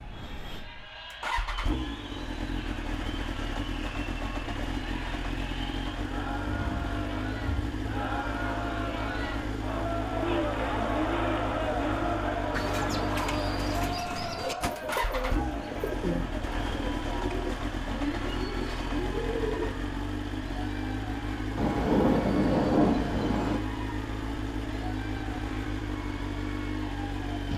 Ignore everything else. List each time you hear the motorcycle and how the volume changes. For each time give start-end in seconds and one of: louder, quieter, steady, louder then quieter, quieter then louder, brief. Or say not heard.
0.0-27.5 steady.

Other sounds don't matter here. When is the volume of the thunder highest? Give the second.
23 s.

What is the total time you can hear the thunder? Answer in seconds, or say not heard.
4 s.